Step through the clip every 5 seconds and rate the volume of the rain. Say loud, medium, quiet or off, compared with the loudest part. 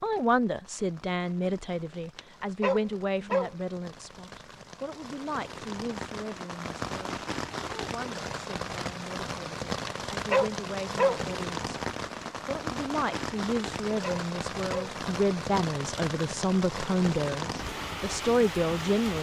quiet, loud, loud, loud.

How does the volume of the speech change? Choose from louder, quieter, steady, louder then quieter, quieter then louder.
quieter then louder.